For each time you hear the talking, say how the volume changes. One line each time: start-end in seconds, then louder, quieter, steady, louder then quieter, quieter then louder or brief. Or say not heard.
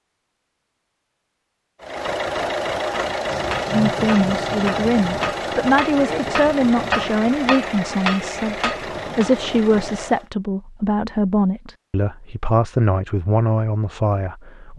3.7-14.7 steady.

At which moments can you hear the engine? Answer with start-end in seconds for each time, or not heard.
1.8-10.3.